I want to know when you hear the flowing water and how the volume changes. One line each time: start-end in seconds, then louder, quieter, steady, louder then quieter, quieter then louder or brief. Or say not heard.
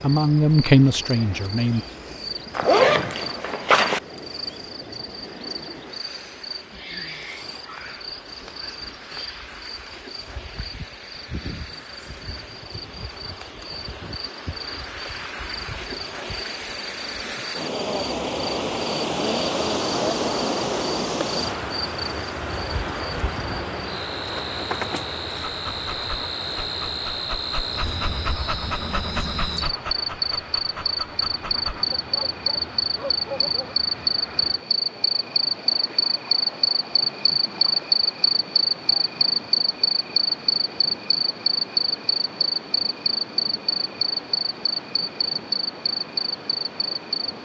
0.0-47.4 louder then quieter.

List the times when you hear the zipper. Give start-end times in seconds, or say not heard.
2.5-4.0.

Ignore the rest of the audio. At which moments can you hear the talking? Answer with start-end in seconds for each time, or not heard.
0.0-1.9.